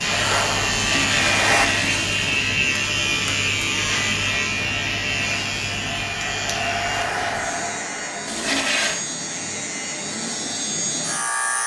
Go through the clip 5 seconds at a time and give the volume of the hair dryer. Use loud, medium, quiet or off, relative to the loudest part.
loud, medium, quiet.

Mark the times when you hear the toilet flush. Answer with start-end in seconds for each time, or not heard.
0.7-2.4, 8.2-9.1.